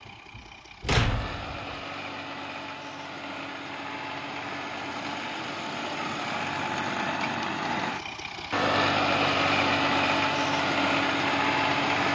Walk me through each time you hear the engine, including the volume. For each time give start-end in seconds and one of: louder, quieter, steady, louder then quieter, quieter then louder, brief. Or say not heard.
0.0-12.1 louder.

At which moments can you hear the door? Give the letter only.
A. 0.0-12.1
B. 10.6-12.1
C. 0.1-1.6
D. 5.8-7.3
C.